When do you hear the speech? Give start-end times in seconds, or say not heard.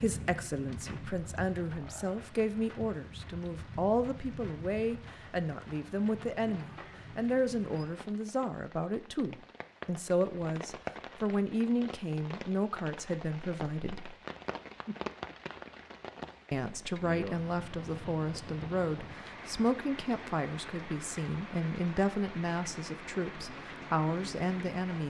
0.0-14.2, 16.5-25.0.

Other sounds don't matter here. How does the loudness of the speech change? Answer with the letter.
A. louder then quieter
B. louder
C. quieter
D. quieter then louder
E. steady
E.